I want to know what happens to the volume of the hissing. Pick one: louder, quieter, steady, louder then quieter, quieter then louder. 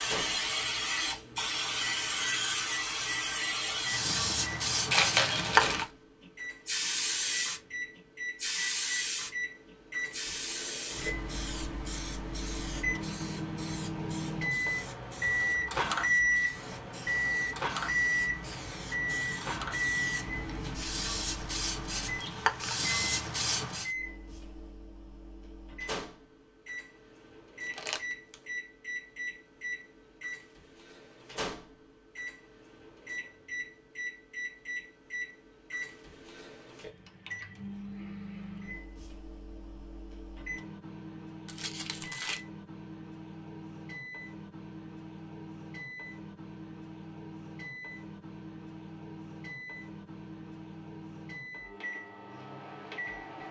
quieter then louder.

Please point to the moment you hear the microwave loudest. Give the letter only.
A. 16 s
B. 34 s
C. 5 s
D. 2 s
A.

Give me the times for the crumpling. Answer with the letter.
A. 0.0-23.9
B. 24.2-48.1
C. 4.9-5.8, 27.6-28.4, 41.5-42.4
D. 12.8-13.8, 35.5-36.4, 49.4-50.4
C.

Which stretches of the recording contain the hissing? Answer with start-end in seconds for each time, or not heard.
0.0-23.9.